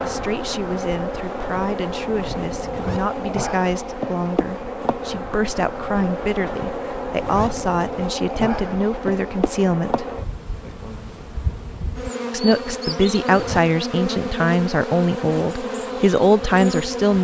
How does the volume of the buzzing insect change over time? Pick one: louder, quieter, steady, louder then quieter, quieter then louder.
steady.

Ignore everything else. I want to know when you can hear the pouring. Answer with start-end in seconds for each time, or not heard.
not heard.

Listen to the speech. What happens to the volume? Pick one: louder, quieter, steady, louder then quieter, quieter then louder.
louder.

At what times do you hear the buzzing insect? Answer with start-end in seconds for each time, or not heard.
0.0-17.1.